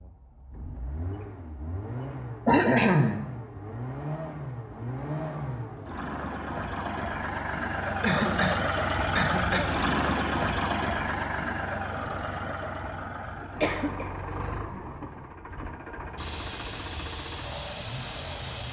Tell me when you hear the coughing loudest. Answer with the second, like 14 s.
3 s.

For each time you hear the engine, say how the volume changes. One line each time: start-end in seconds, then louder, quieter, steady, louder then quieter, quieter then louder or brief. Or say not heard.
0.0-18.6 louder then quieter.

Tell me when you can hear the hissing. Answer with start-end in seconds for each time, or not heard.
16.1-18.6.